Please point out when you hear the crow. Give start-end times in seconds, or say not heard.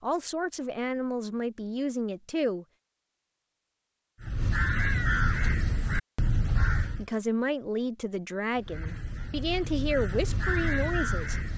4.2-7.0, 8.6-11.5.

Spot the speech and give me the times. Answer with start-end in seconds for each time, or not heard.
0.0-2.6, 6.9-11.4.